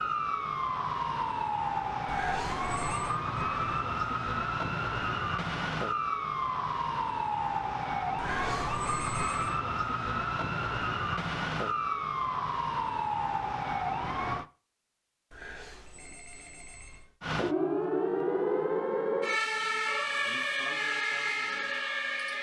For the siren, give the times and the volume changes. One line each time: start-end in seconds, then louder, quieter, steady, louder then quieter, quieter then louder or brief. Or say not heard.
0.0-14.4 steady
17.2-22.3 steady.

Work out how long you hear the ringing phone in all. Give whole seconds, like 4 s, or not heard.
4 s.